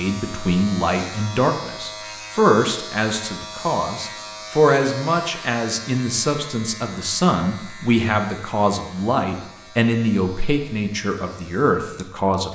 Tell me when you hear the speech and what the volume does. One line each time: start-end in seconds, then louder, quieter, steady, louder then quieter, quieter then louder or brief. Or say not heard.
0.0-12.5 steady.